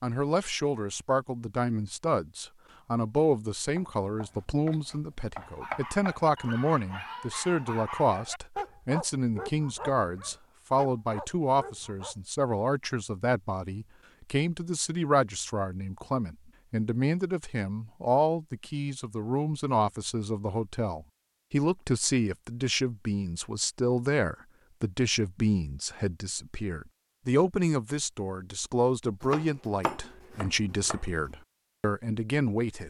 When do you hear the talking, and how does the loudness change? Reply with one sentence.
You can hear the talking from 0.0 to 32.8 s, at a steady volume.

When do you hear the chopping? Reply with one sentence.
The chopping can be heard from 3.8 to 6.2 s and from 29.2 to 31.1 s.